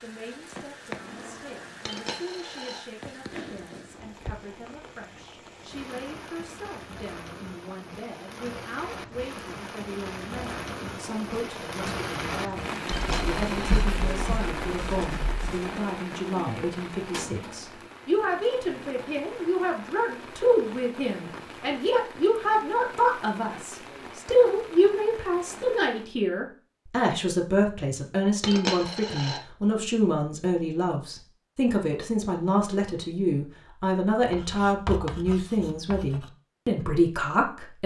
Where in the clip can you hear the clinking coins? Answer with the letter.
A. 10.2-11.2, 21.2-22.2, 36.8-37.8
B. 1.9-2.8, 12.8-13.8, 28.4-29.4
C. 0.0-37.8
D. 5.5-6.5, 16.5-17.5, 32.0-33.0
B.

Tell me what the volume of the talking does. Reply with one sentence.
The loudness of the talking goes up.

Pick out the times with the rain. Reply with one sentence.
The rain can be heard from 0.0 to 26.1 s.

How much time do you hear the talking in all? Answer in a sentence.
The talking can be heard for 38 seconds in total.